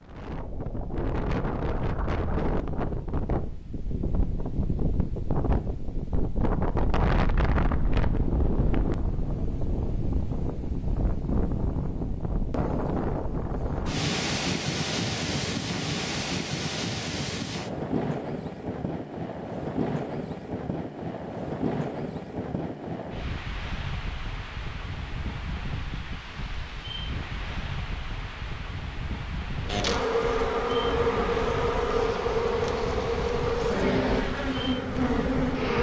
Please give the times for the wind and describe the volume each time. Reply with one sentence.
The wind can be heard from 0.0 to 35.6 s, getting quieter.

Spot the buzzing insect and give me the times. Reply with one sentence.
The buzzing insect can be heard from 29.6 to 35.7 s.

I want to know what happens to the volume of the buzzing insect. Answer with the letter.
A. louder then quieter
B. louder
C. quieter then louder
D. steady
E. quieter
D.